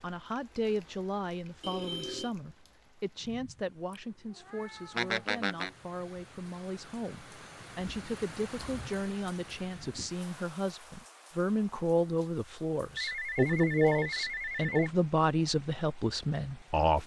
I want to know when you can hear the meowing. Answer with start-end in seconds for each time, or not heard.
3.9-5.8.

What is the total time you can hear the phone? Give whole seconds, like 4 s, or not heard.
3 s.